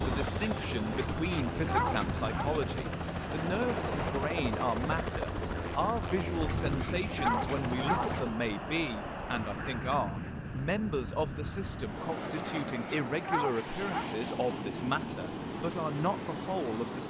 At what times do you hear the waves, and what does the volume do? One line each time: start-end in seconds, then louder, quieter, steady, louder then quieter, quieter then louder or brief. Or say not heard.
0.0-17.0 steady.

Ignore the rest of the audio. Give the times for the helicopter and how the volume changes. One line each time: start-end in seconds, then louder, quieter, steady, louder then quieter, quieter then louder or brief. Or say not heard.
0.0-8.3 steady.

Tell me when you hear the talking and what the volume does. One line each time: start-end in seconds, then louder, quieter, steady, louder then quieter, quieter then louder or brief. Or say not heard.
0.0-17.0 steady.